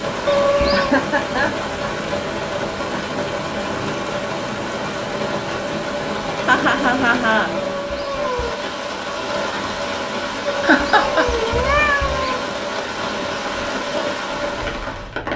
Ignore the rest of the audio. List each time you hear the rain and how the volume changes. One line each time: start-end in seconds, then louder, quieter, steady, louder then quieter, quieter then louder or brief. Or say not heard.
0.0-15.3 steady.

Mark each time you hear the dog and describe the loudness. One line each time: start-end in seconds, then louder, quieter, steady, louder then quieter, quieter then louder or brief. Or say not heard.
not heard.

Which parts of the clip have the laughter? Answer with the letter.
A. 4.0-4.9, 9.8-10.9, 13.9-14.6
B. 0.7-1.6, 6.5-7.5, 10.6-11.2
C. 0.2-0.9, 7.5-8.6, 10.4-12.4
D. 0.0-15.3
B.